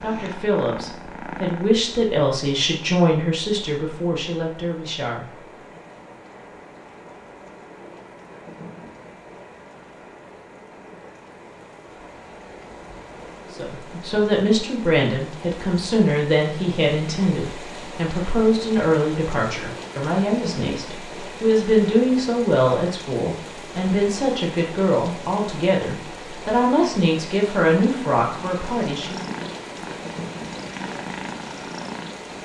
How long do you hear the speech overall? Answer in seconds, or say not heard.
21 s.